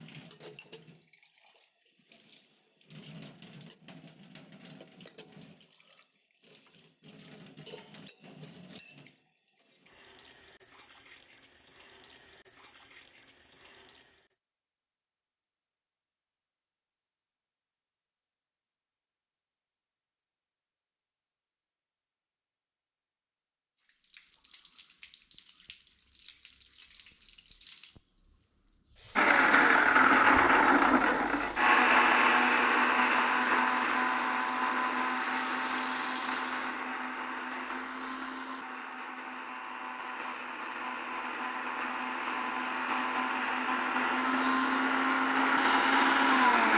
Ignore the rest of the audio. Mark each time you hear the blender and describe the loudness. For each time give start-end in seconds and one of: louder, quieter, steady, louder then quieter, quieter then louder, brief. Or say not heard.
29.1-46.7 quieter then louder.